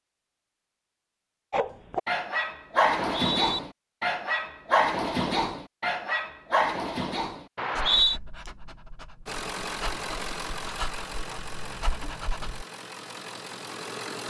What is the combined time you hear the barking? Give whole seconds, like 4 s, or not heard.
11 s.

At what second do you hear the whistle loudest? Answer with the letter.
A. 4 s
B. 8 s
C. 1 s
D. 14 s
B.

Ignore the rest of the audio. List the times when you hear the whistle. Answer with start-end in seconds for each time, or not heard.
3.0-3.6, 7.5-8.2.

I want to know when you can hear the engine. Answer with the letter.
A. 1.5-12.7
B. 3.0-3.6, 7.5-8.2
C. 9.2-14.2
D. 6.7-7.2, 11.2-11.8
C.